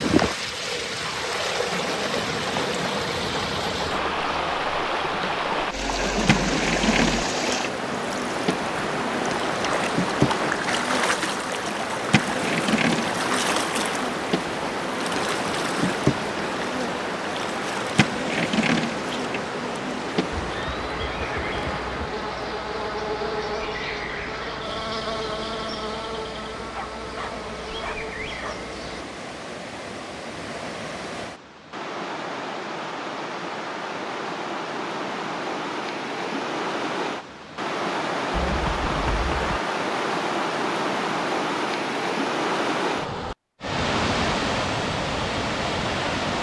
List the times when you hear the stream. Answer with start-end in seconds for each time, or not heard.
0.0-46.3.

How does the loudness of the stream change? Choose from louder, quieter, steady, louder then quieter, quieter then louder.
quieter then louder.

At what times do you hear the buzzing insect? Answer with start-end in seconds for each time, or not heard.
6.2-29.1.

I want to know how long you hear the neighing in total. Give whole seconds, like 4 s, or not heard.
4 s.